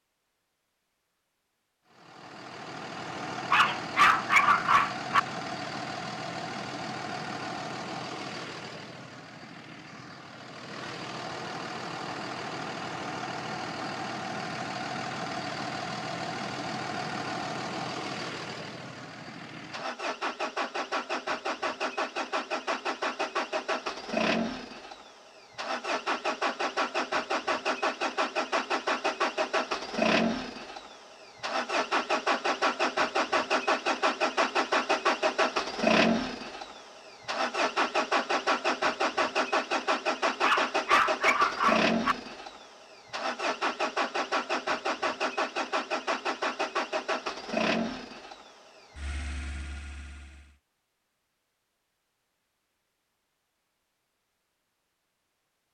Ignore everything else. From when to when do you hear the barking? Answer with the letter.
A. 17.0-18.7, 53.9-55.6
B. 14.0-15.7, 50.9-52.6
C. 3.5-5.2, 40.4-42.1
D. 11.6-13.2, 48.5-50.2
C.